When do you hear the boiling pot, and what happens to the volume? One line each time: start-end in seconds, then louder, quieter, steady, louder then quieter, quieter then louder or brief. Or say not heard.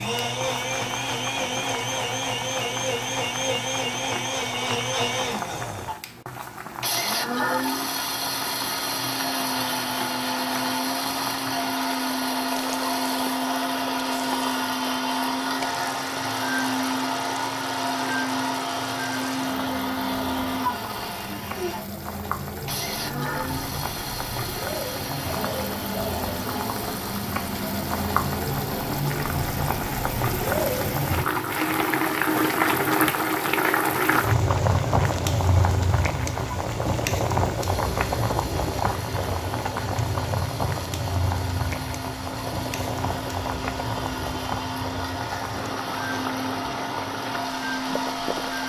0.1-48.6 louder then quieter.